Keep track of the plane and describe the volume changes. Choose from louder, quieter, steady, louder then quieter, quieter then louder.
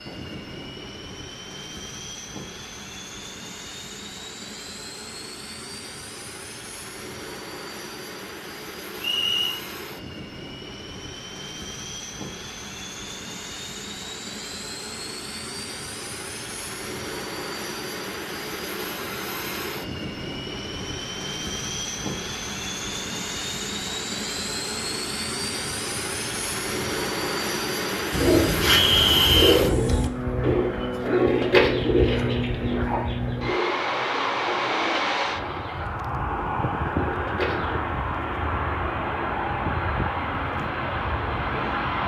louder.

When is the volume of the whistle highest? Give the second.
29 s.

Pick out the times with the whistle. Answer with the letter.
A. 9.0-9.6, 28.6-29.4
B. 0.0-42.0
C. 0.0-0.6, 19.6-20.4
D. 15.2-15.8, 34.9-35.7
A.